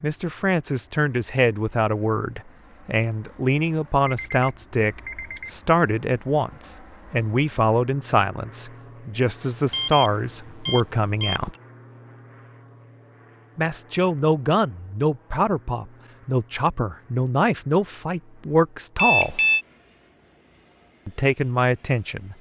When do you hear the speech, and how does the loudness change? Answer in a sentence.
You can hear the speech from 0.0 to 11.6 s, at a steady volume; from 13.6 to 19.4 s, at a steady volume; and briefly from 21.1 to 22.3 s.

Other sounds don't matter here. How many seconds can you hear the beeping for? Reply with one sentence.
You can hear the beeping for 4 seconds altogether.